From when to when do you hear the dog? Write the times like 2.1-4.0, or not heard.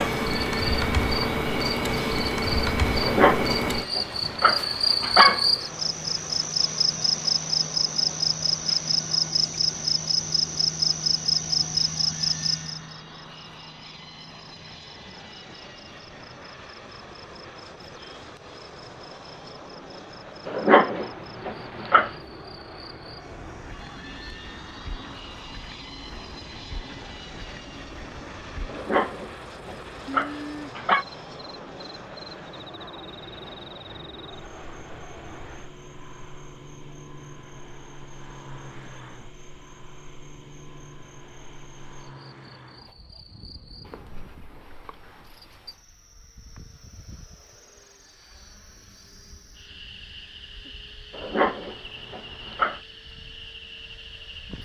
3.0-5.5, 20.4-22.1, 28.6-31.1, 51.1-52.8.